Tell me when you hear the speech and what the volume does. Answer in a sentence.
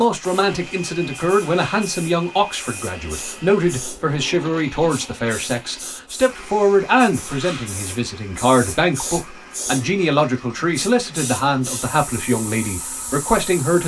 You can hear the speech from 0.0 to 13.8 s, at a steady volume.